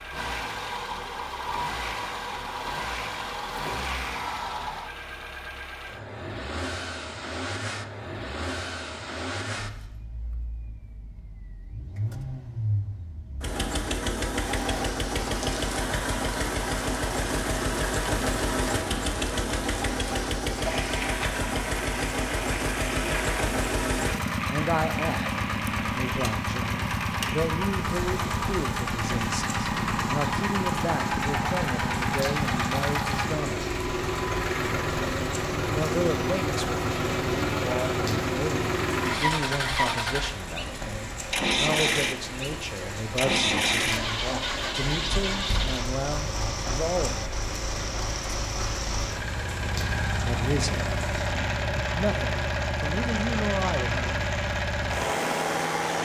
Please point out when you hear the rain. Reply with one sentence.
The rain can be heard from 14.2 to 56.0 s.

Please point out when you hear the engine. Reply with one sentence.
You can hear the engine from 0.0 to 56.0 s.